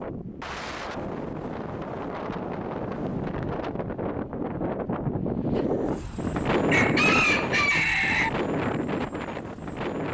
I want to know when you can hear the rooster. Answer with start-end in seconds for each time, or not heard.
6.7-8.3.